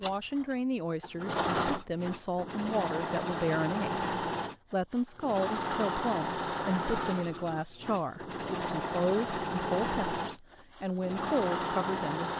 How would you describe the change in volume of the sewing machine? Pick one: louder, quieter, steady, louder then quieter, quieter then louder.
steady.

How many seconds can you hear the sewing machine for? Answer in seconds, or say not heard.
12 s.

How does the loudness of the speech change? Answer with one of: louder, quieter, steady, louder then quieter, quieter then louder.
steady.